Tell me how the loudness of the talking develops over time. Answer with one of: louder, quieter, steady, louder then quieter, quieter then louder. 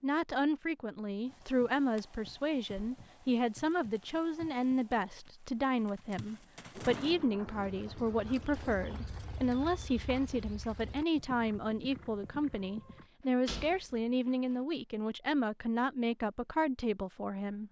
steady.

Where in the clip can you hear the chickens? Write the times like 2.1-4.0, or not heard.
not heard.